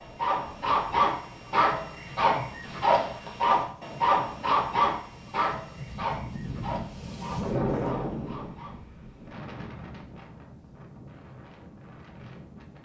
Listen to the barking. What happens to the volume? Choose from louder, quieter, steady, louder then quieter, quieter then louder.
quieter.